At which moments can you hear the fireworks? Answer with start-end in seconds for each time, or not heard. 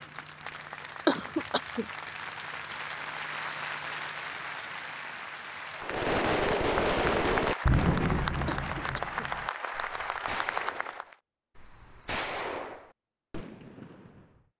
5.8-13.9.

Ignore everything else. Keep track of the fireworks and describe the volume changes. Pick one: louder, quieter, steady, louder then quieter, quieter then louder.
quieter then louder.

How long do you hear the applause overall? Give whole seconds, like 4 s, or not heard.
11 s.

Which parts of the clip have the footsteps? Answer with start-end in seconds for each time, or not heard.
not heard.